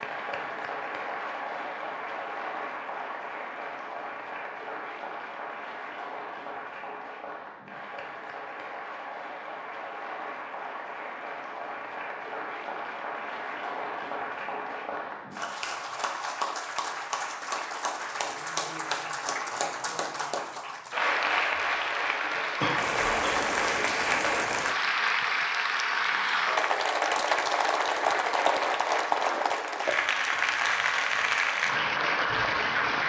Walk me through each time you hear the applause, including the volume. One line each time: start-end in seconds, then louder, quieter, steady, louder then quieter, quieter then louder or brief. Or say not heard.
0.0-33.0 louder.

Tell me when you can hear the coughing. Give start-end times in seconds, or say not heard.
22.6-23.4.